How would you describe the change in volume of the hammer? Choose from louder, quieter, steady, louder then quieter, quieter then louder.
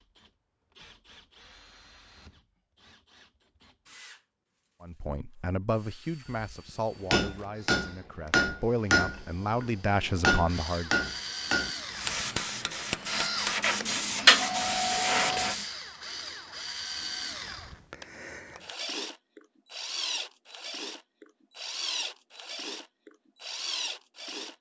quieter.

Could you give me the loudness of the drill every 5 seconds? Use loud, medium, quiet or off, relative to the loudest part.
quiet, quiet, loud, loud, loud.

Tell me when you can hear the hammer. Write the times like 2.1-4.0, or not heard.
6.3-13.6.